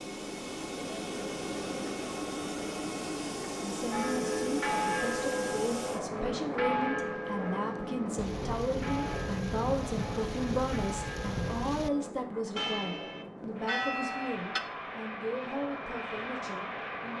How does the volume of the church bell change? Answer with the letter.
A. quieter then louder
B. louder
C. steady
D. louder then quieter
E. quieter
A.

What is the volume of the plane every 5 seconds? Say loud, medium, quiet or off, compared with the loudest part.
loud, loud, medium, loud.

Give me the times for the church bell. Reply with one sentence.
The church bell can be heard from 3.9 to 14.6 s.